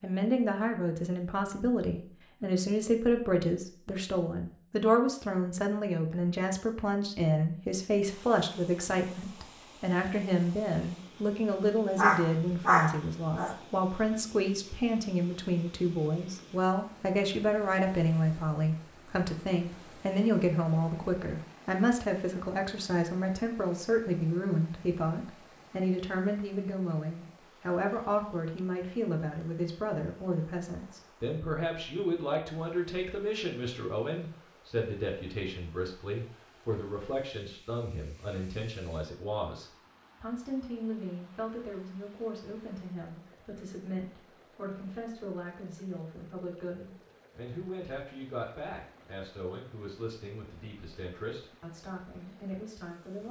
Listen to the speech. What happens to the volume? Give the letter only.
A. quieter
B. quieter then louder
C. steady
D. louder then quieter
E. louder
A.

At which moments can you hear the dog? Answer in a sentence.
You can hear the dog from 11.9 to 13.6 s.